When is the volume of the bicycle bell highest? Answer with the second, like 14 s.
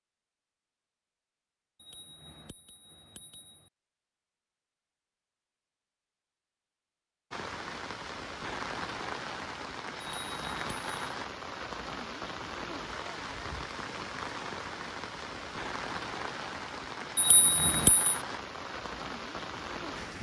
18 s.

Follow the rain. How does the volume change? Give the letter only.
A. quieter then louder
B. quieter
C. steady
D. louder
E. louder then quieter
C.